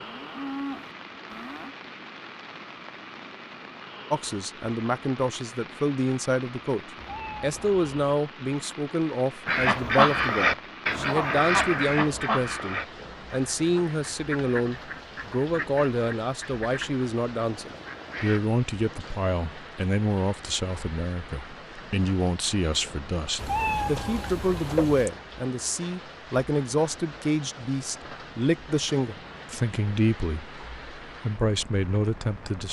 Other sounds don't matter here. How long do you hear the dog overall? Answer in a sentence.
The dog can't be heard in this clip.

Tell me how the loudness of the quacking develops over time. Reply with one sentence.
The loudness of the quacking goes down.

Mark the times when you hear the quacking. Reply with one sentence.
The quacking can be heard from 9.4 to 18.4 s.